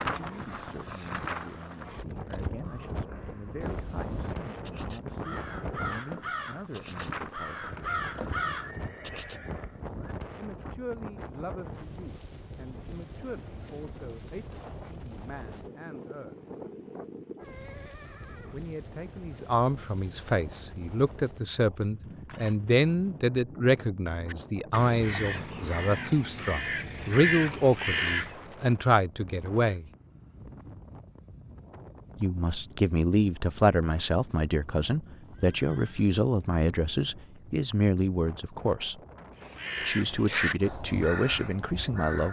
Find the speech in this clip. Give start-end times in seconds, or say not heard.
0.1-8.1, 10.3-16.4, 18.5-29.9, 32.2-39.0, 39.8-42.2.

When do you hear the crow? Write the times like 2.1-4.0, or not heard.
0.0-9.3, 24.2-28.4, 39.4-42.2.